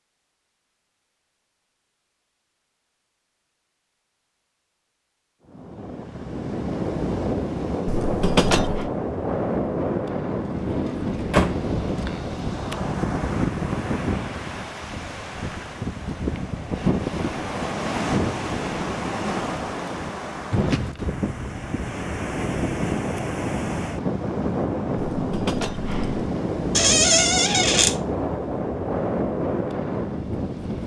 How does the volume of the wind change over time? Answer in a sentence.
The loudness of the wind stays about the same.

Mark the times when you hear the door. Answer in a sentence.
You can hear the door from 10.4 to 11.6 s and from 26.8 to 27.9 s.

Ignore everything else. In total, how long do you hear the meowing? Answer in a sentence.
The meowing can be heard for 2 seconds in total.